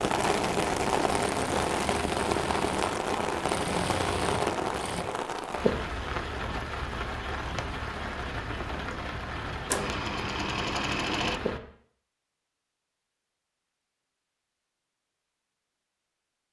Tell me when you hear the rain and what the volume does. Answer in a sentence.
You can hear the rain from 0.0 to 11.6 s, getting quieter.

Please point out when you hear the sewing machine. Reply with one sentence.
The sewing machine can be heard from 0.0 to 5.0 s and from 9.7 to 11.4 s.